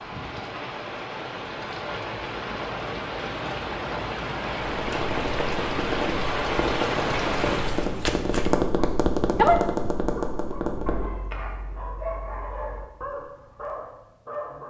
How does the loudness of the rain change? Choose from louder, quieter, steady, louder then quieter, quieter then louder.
louder.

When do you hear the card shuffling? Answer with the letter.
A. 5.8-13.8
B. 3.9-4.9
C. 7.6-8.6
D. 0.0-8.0
C.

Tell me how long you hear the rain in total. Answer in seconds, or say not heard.
8 s.